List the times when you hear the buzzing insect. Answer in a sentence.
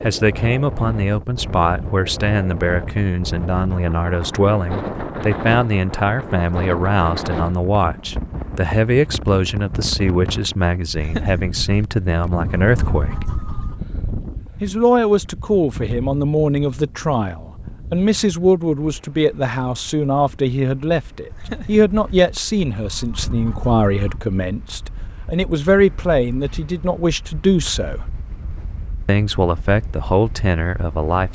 You can't hear the buzzing insect here.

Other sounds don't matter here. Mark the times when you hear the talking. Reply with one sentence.
You can hear the talking from 0.0 to 13.2 s, from 14.6 to 28.1 s and from 29.1 to 31.2 s.